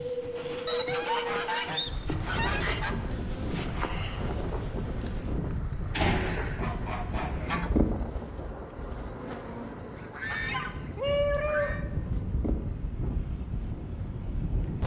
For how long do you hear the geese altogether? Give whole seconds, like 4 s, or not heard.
6 s.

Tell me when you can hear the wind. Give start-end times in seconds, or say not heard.
0.0-14.8.